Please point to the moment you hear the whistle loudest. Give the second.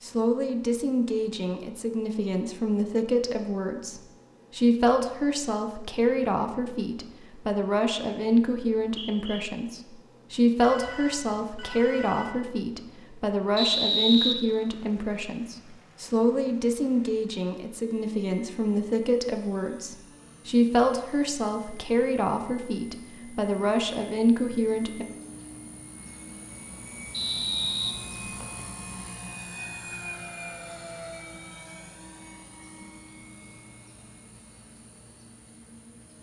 14 s.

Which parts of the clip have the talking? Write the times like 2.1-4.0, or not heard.
0.0-25.1.